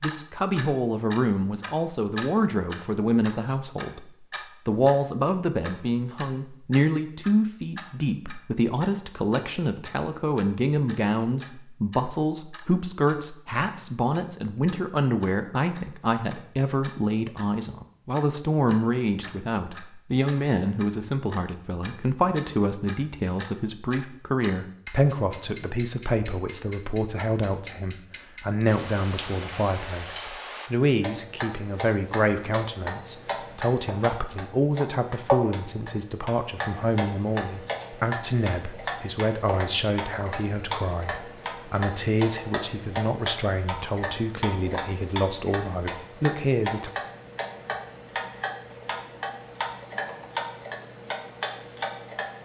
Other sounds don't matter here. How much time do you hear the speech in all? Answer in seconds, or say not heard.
47 s.